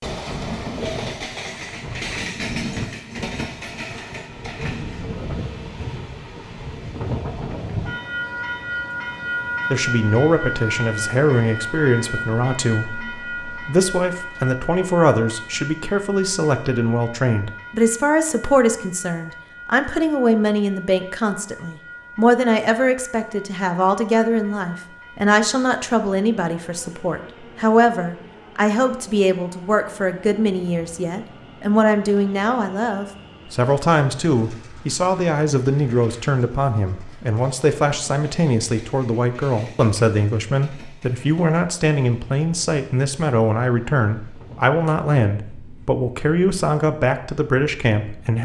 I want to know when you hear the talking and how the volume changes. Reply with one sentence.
The talking can be heard from 9.7 to 48.4 s, at a steady volume.